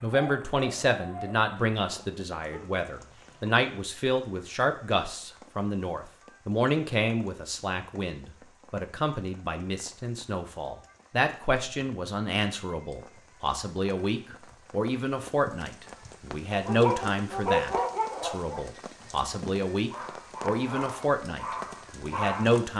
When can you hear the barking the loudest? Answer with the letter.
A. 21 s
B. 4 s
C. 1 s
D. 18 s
D.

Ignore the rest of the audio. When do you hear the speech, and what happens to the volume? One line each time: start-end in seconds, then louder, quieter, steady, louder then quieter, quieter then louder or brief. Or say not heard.
0.0-22.7 steady.